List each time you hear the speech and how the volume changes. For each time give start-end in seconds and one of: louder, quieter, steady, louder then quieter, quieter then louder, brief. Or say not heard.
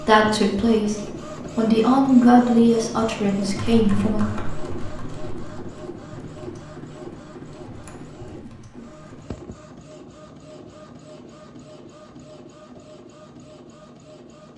0.0-4.3 louder then quieter.